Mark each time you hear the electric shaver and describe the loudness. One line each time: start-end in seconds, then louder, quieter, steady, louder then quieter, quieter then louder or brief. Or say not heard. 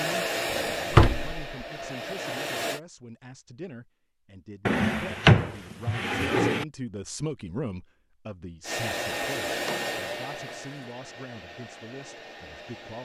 not heard.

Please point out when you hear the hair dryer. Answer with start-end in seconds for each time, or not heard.
0.0-2.8, 8.6-13.0.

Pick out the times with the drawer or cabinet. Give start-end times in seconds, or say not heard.
0.5-1.4, 4.7-6.7, 9.5-10.9.